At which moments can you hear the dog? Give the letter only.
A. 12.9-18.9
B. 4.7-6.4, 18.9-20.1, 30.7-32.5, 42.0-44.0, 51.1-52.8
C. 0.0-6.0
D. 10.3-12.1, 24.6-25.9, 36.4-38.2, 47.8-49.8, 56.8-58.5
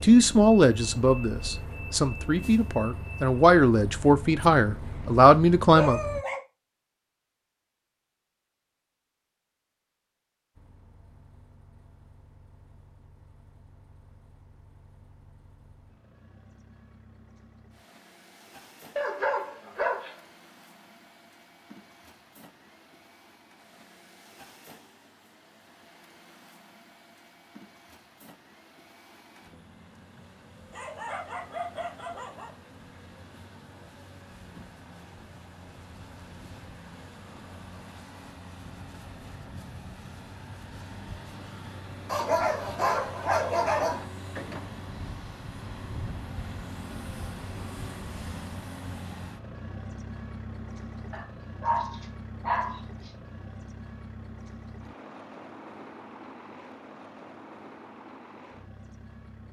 B.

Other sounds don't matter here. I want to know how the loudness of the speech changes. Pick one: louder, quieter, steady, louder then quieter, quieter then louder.
quieter then louder.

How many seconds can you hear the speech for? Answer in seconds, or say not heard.
6 s.